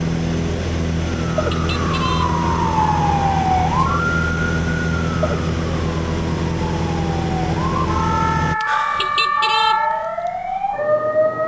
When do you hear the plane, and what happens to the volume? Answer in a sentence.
You can hear the plane from 0.0 to 8.6 s, at a steady volume.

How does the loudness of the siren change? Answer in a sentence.
The loudness of the siren goes down, then up.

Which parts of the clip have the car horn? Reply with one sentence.
You can hear the car horn from 1.5 to 2.4 s and from 8.9 to 9.8 s.